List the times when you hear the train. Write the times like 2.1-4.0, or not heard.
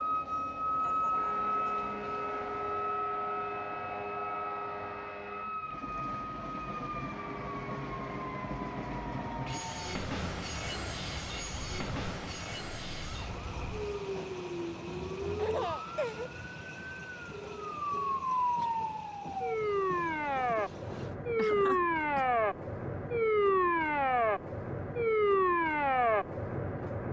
0.0-27.0.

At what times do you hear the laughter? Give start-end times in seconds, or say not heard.
0.7-1.4, 15.3-16.4, 21.4-22.2.